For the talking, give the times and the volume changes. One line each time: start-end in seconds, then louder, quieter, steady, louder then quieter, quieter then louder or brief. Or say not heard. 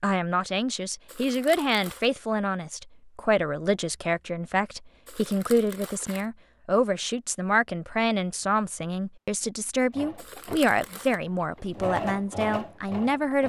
0.0-13.4 steady.